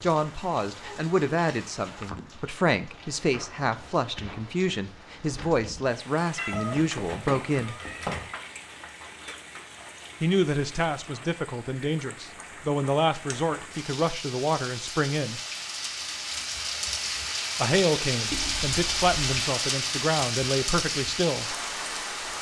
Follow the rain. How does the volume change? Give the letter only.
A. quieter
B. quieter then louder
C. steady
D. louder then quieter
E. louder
E.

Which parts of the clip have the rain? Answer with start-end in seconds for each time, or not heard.
0.0-22.3.